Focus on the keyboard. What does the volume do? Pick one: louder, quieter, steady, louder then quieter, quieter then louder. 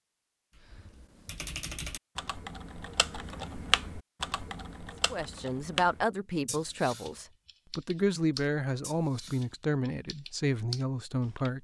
louder then quieter.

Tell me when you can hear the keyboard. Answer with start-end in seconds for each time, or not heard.
0.6-11.5.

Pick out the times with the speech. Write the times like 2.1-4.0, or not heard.
5.1-11.5.